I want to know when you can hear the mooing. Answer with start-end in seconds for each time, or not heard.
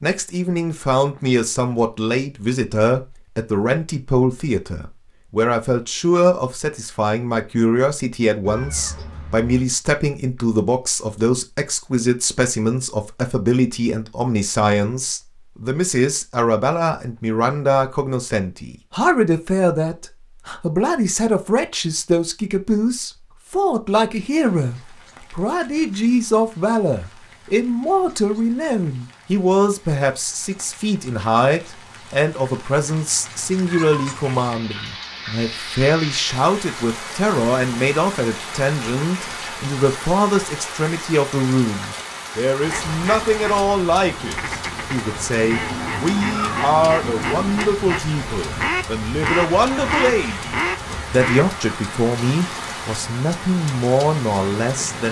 not heard.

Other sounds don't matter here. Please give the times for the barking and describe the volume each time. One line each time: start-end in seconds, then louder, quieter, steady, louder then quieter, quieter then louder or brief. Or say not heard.
not heard.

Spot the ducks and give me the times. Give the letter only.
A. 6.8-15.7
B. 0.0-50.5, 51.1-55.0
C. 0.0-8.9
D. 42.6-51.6
D.